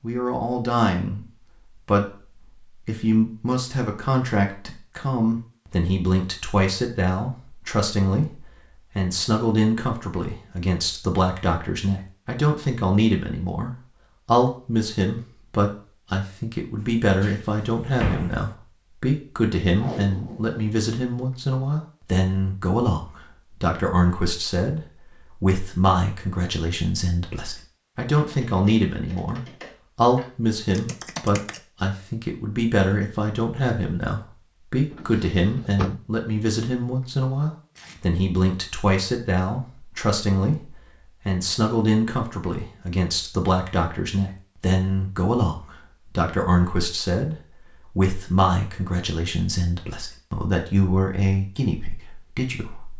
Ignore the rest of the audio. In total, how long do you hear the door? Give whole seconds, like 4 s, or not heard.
2 s.